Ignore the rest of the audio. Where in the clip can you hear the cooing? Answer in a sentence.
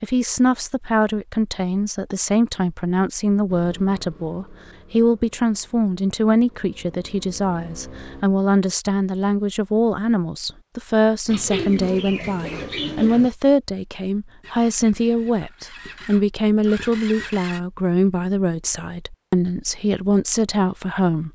You can hear the cooing from 11.2 to 13.3 s.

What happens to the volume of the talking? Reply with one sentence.
The loudness of the talking stays about the same.